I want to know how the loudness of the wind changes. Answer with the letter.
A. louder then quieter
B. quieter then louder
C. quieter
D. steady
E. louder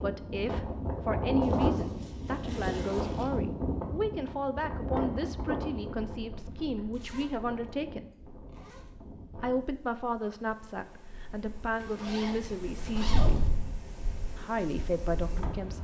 B.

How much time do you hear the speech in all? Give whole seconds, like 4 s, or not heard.
13 s.